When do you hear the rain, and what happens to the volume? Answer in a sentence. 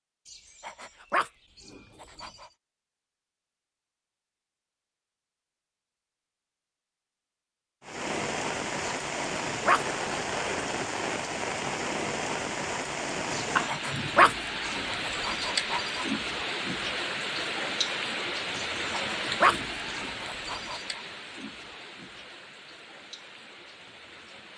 You can hear the rain from 7.8 to 24.5 s, getting quieter.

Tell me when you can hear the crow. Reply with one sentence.
You can't hear the crow here.